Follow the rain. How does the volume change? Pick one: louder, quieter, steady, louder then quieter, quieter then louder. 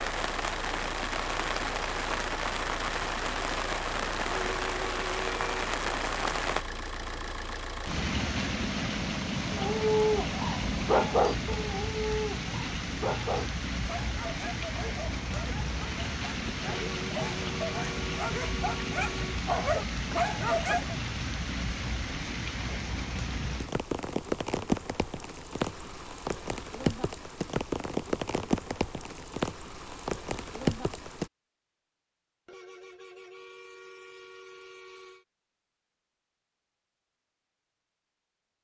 steady.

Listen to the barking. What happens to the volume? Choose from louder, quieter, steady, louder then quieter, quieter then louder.
quieter then louder.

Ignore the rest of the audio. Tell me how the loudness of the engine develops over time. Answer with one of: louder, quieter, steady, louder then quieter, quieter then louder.
steady.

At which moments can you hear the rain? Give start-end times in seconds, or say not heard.
0.0-31.3.